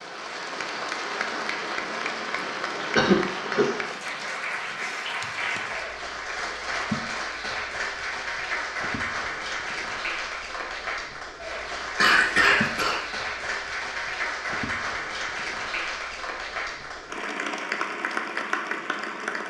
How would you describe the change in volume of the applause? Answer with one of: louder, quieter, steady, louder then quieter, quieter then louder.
steady.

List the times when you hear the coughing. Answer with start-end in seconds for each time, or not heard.
3.0-3.6, 11.9-13.0.